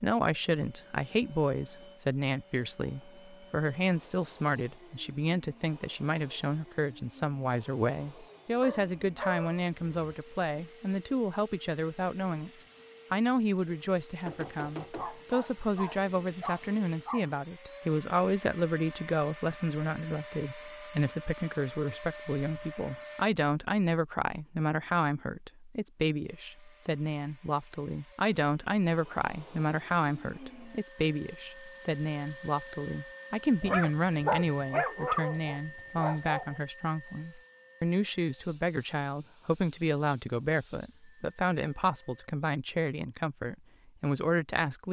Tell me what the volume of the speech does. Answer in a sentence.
The volume of the speech stays about the same.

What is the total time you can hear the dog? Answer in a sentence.
The dog can be heard for 7 seconds in total.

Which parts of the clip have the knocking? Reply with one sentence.
You can hear the knocking from 14.2 to 15.2 s.